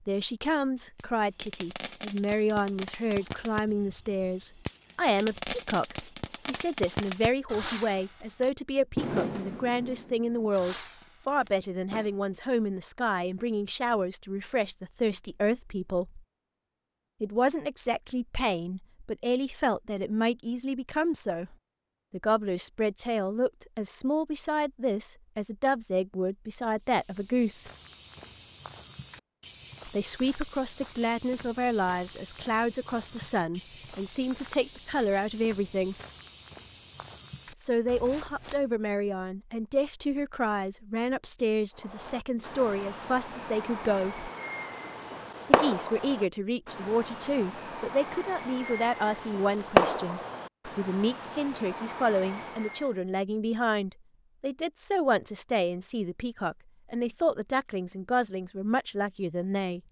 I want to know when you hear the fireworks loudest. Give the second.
50 s.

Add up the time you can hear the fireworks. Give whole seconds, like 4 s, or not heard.
22 s.